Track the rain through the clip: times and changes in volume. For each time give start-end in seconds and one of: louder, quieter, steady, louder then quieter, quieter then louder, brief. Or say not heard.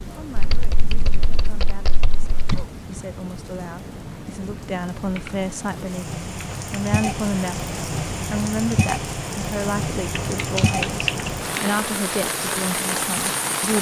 0.0-13.7 louder.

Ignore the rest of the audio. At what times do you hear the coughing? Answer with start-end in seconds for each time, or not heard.
2.5-3.0.